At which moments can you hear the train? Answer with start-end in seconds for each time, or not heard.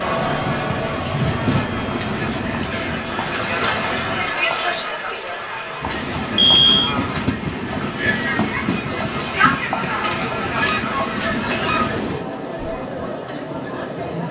0.0-4.3, 5.8-12.2.